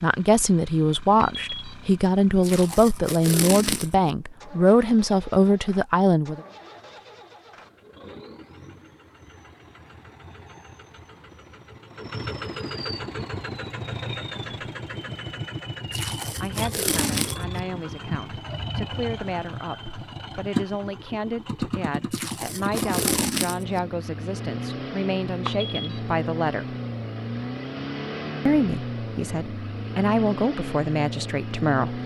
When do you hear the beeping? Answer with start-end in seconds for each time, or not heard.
1.2-1.8, 25.4-26.1.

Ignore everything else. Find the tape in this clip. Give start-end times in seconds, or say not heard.
2.4-4.2, 15.9-17.6, 22.1-23.9.